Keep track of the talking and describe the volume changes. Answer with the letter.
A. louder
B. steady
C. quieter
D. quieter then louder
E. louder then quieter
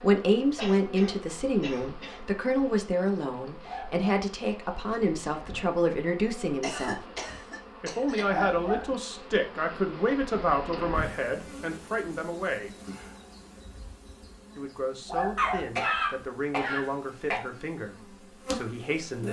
C.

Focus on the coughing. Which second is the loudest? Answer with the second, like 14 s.
16 s.